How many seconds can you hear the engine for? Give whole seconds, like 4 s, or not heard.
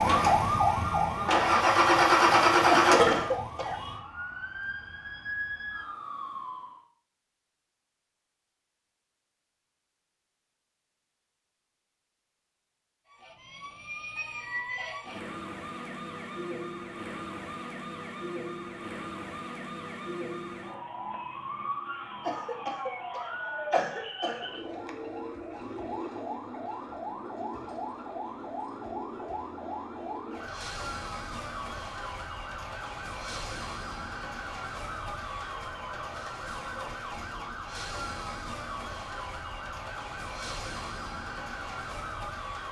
3 s.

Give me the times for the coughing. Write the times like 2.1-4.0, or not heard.
2.6-3.8, 22.2-24.5.